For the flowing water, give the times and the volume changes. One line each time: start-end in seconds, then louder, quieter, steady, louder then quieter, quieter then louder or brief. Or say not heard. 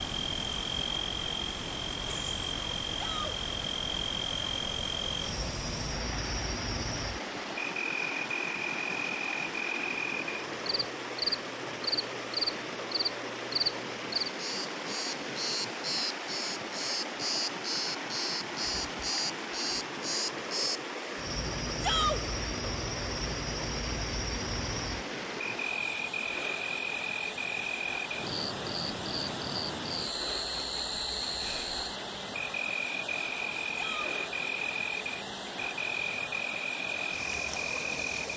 0.0-38.3 steady.